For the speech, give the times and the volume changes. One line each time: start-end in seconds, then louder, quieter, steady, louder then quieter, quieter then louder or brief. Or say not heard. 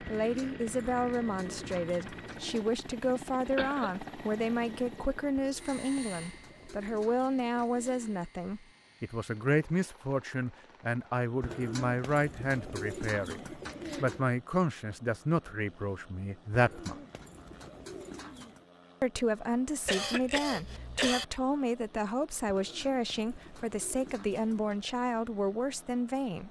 0.0-17.0 steady
19.0-26.4 steady.